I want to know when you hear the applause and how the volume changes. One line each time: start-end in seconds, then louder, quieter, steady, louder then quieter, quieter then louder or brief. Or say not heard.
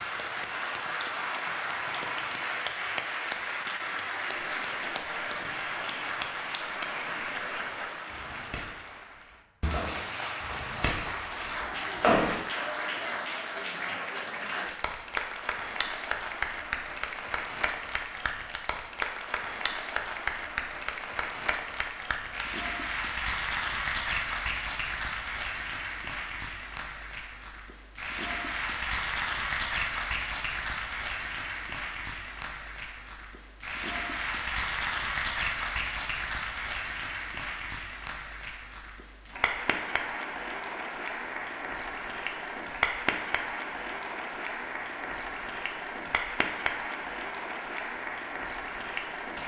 0.0-49.4 steady.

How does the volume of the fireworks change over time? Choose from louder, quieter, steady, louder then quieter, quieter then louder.
louder.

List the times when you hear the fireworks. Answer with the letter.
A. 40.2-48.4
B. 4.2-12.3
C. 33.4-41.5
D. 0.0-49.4
B.